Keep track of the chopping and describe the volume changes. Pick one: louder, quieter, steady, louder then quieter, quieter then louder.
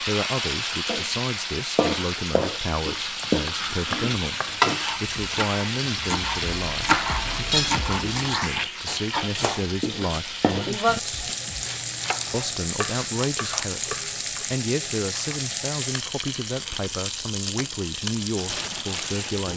louder then quieter.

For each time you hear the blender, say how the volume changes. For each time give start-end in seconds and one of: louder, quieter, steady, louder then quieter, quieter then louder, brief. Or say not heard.
not heard.